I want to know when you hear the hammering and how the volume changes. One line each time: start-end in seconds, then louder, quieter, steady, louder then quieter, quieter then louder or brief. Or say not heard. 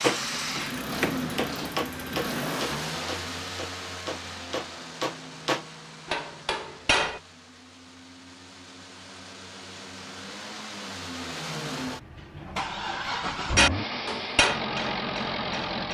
0.0-7.2 quieter then louder
13.6-15.8 brief.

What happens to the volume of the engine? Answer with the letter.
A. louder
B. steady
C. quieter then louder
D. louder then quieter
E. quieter
C.